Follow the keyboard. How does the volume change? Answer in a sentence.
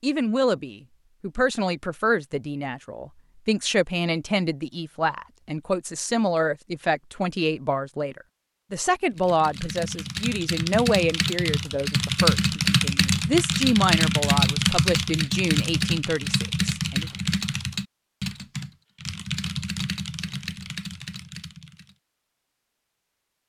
The loudness of the keyboard goes up, then down.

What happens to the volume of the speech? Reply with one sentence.
The volume of the speech stays about the same.